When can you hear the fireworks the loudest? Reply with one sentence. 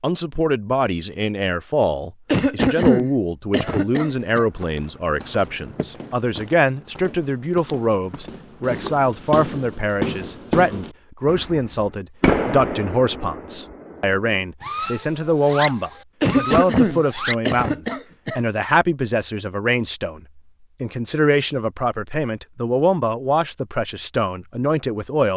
The loudest moment of the fireworks is at 12 seconds.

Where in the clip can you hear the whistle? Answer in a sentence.
You can't hear the whistle here.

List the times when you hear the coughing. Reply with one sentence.
The coughing can be heard from 2.2 to 4.5 s and from 16.2 to 18.4 s.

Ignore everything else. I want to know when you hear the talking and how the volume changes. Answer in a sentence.
You can hear the talking from 0.0 to 25.3 s, at a steady volume.